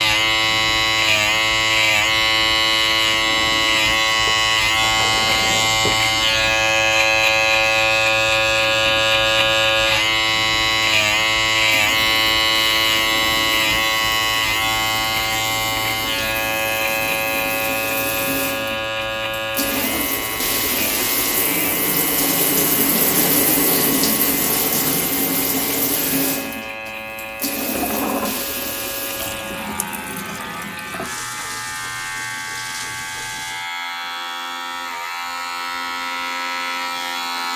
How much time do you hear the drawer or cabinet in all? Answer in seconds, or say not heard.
3 s.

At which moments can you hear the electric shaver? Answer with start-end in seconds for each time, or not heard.
0.0-37.5.